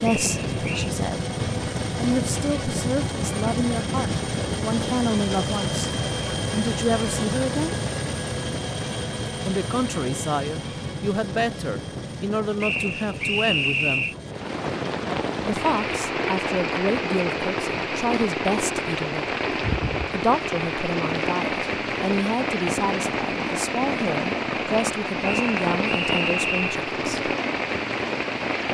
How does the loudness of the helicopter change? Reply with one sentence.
The loudness of the helicopter goes down.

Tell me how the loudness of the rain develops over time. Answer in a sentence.
The loudness of the rain stays about the same.